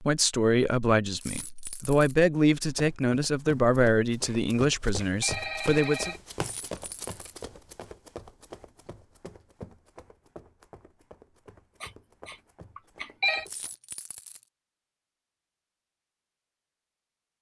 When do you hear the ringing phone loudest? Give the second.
13 s.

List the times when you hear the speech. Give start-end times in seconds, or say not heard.
0.0-6.2.